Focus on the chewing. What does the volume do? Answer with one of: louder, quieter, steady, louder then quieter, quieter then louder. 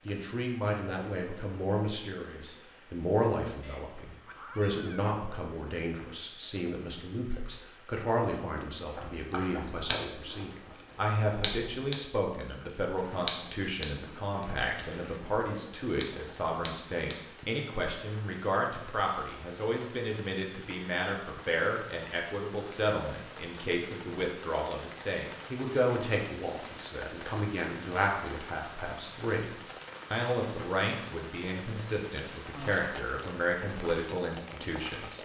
louder then quieter.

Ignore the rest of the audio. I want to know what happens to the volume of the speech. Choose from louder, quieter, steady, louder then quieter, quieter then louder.
steady.